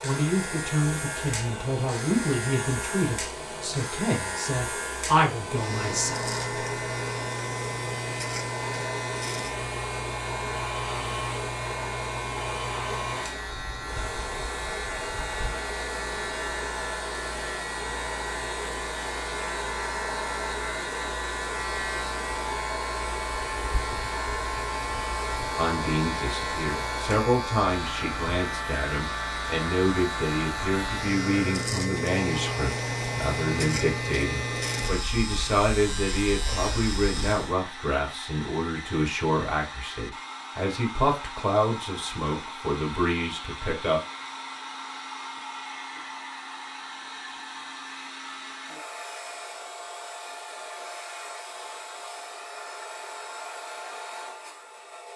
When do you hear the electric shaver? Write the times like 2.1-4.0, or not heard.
0.0-37.5.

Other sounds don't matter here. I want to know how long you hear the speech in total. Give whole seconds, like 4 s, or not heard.
25 s.